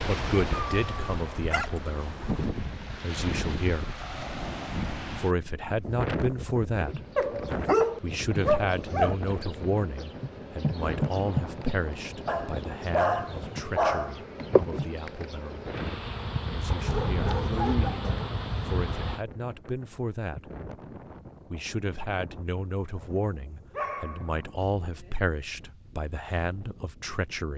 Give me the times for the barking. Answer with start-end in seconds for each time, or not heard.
0.7-2.2, 7.2-9.2, 12.2-14.2, 16.7-18.3, 23.7-25.1.